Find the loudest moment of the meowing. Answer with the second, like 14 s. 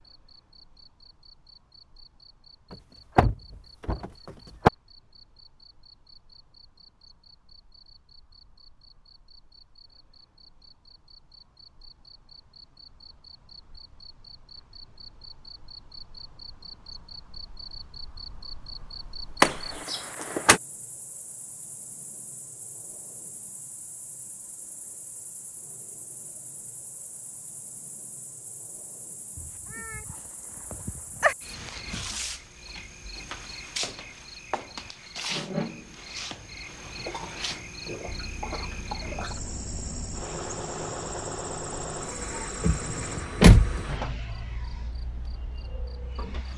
31 s.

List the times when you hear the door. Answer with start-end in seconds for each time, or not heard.
3.1-4.0, 19.4-20.6, 42.6-43.9.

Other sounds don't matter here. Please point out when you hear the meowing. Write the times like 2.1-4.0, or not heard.
29.4-31.4.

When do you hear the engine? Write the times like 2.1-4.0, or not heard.
38.0-46.5.